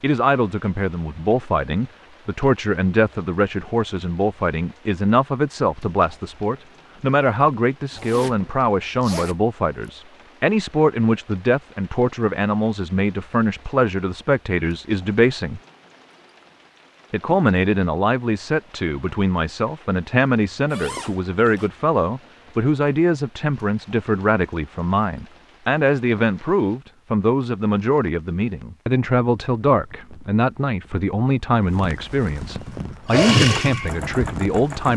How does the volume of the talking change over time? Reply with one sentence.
The volume of the talking stays about the same.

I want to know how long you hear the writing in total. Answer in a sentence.
The writing can't be heard in this clip.